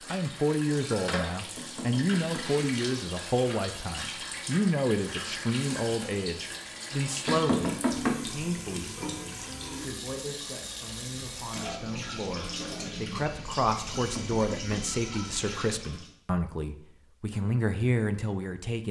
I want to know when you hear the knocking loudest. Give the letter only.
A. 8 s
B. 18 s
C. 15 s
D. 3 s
A.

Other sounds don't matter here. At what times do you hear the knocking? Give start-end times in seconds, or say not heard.
1.6-2.6, 7.2-8.2, 13.9-14.8.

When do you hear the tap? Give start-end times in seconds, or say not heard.
0.0-16.1.